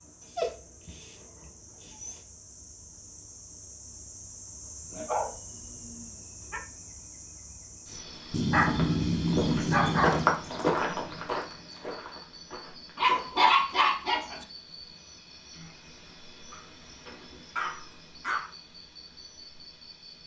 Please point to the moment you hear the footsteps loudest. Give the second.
10 s.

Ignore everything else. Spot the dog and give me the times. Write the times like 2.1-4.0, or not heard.
0.2-2.2, 4.9-6.6, 8.3-10.3, 12.9-14.4, 16.5-18.5.